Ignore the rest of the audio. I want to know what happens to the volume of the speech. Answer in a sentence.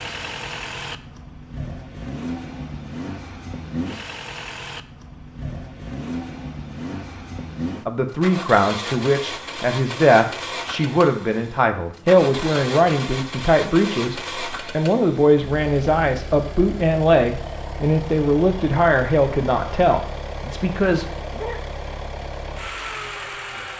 The volume of the speech stays about the same.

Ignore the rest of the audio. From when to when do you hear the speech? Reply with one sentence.
You can hear the speech from 7.8 to 21.6 s.